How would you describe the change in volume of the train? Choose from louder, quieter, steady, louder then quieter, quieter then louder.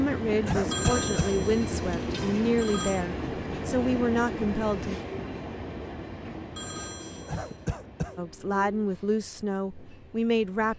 quieter.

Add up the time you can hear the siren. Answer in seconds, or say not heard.
not heard.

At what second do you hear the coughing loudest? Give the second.
1 s.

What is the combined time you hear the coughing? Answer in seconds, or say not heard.
2 s.